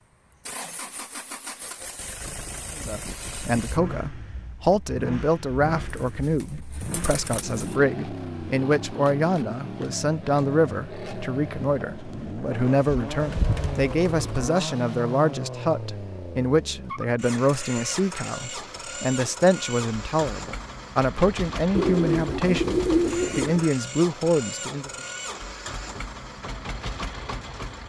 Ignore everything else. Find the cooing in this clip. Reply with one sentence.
The cooing can be heard from 5.8 to 7.8 s, from 12.8 to 14.5 s and from 21.8 to 23.7 s.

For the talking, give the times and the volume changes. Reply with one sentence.
You can hear the talking from 2.8 to 24.9 s, at a steady volume.